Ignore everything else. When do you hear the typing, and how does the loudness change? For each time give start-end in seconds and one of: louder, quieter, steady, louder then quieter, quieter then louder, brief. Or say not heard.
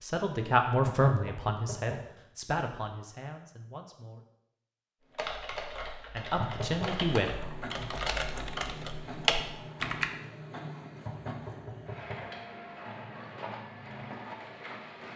5.1-10.1 louder.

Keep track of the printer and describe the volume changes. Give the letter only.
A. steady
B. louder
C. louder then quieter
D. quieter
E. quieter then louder
A.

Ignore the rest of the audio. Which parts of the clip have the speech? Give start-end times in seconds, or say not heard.
0.0-4.2, 6.2-7.9.